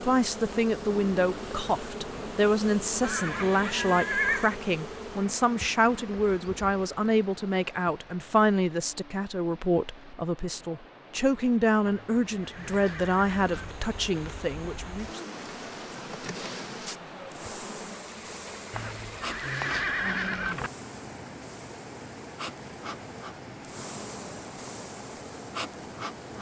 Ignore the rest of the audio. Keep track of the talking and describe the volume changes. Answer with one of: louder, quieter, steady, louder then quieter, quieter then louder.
steady.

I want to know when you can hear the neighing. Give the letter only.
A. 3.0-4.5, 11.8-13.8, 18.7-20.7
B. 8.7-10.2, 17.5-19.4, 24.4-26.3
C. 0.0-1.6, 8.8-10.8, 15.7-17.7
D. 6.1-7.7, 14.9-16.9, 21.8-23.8
A.